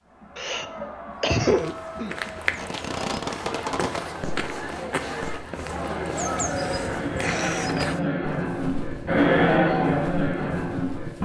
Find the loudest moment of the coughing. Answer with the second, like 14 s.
1 s.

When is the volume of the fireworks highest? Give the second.
3 s.